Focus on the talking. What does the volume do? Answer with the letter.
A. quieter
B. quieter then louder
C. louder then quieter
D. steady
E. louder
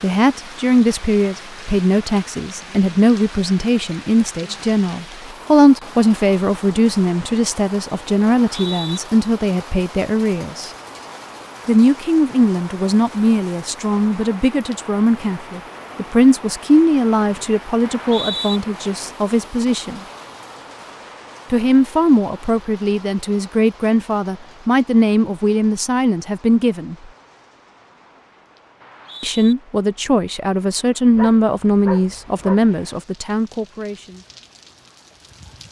D.